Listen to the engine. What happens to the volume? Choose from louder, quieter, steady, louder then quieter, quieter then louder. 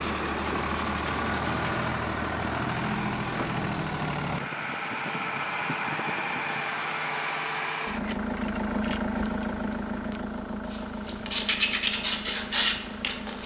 quieter.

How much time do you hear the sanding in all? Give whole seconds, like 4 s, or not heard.
5 s.